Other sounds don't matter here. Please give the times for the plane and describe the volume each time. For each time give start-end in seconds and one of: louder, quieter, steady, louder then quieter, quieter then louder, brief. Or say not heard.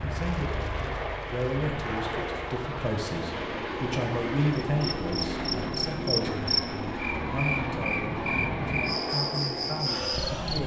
0.0-10.6 steady.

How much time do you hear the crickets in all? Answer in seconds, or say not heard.
6 s.